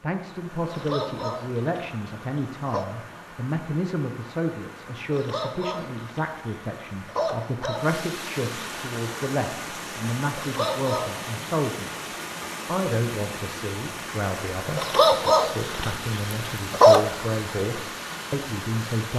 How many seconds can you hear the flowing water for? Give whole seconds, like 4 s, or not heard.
19 s.